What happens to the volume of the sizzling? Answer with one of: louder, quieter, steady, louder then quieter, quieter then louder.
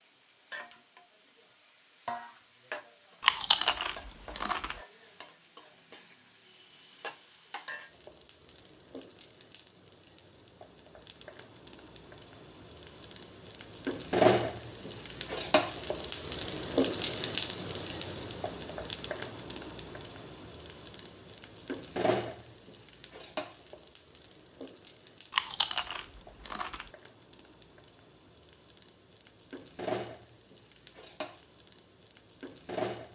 louder then quieter.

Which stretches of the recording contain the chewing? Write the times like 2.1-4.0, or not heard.
3.2-4.8, 25.3-26.9.